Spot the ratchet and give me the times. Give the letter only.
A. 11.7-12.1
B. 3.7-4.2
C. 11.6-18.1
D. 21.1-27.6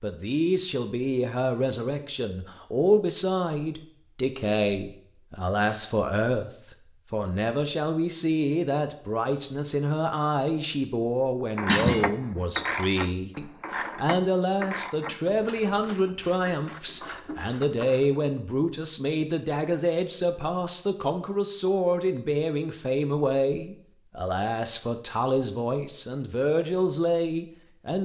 C.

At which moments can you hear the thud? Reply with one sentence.
The thud can be heard from 11.7 to 12.1 s.